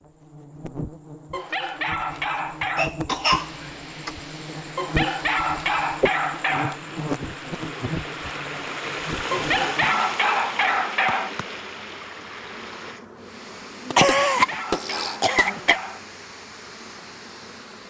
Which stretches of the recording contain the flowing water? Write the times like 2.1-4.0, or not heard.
3.2-17.8.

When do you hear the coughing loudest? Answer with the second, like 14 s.
14 s.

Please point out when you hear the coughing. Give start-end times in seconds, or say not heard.
2.8-4.1, 6.0-6.5, 13.9-15.8.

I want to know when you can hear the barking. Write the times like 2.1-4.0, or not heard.
1.3-2.9, 4.8-6.8, 9.3-11.3, 14.2-16.0.